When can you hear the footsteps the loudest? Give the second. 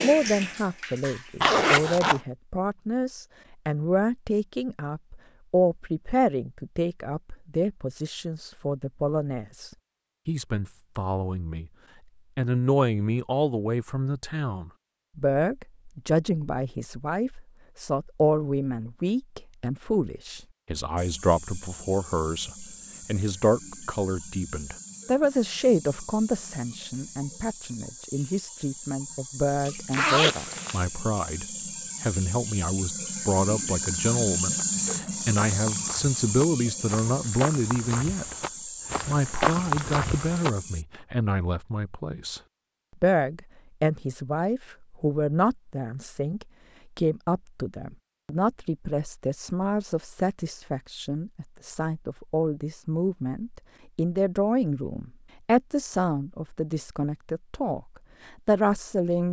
40 s.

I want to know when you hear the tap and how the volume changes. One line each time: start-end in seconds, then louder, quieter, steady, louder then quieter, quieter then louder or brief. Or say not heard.
0.0-2.1 brief
20.9-40.9 louder then quieter.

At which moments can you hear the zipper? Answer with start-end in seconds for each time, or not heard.
1.4-2.2, 29.9-30.9.